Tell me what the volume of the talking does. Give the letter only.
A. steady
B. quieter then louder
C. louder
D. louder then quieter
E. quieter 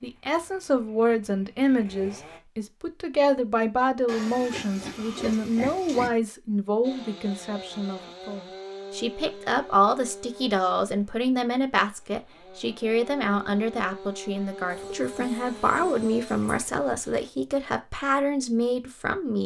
A.